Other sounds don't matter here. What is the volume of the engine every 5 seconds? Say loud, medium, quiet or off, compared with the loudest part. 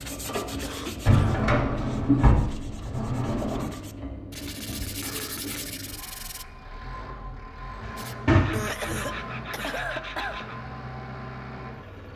loud, medium, medium.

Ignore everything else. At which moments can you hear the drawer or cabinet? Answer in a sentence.
You can hear the drawer or cabinet from 1.0 to 3.7 s and from 7.8 to 9.2 s.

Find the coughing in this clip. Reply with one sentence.
The coughing can be heard from 0.6 to 1.1 s, from 5.0 to 6.0 s and from 8.5 to 10.4 s.